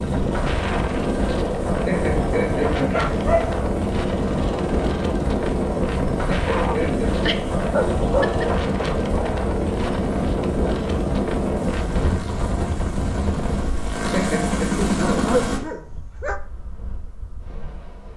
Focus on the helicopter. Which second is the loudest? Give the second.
15 s.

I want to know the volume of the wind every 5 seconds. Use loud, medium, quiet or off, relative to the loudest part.
loud, loud, loud, quiet.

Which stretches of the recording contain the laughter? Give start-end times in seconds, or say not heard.
1.9-3.0, 6.2-7.2, 14.1-14.7.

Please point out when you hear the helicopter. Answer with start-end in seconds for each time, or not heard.
0.0-15.6.